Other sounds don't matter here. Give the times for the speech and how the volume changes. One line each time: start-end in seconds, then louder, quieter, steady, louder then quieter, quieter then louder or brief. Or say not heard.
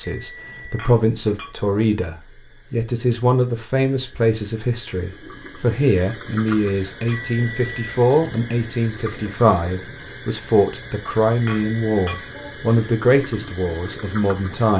0.0-14.7 steady.